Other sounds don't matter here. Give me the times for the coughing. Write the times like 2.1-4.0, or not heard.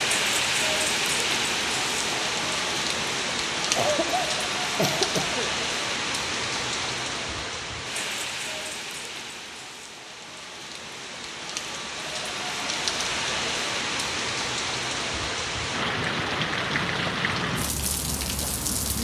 3.8-5.5.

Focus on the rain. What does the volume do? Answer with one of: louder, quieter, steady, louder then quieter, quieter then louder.
quieter then louder.